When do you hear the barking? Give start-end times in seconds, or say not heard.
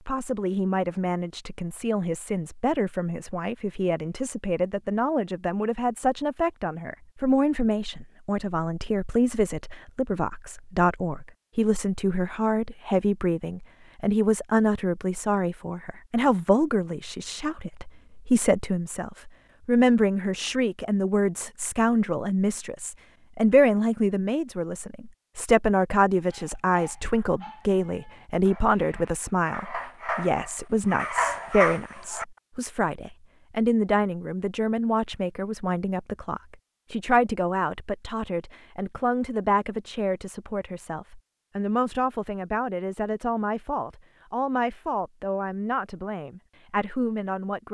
26.2-32.2.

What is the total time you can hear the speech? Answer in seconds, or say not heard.
48 s.